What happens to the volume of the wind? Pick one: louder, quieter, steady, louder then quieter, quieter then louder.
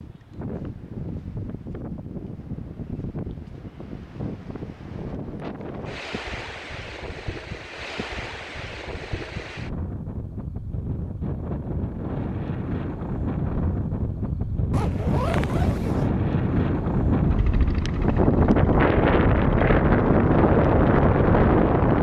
louder.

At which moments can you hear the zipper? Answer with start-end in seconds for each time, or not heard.
14.7-16.1.